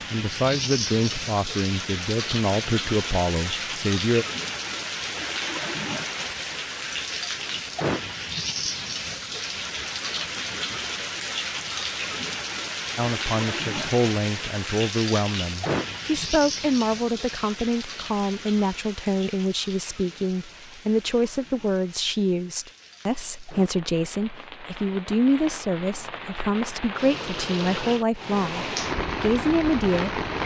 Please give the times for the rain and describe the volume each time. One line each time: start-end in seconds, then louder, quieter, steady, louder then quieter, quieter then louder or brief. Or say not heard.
0.0-30.4 quieter then louder.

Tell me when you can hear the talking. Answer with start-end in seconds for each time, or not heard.
0.1-4.2, 12.9-30.4.